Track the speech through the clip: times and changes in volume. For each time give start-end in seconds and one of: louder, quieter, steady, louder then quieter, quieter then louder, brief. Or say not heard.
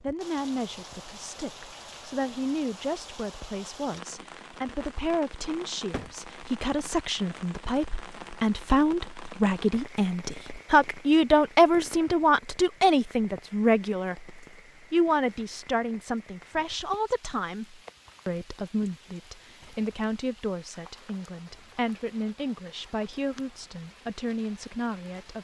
0.0-25.3 louder then quieter.